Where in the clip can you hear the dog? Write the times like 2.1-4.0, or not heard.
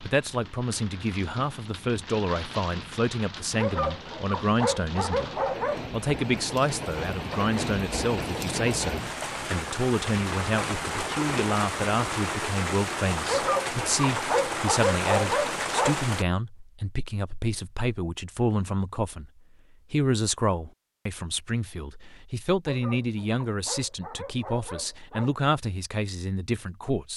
3.5-5.9, 13.2-16.0, 22.6-25.4.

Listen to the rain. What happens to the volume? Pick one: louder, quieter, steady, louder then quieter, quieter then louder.
louder.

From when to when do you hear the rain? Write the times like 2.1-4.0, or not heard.
0.0-16.2.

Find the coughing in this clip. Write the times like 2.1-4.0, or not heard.
not heard.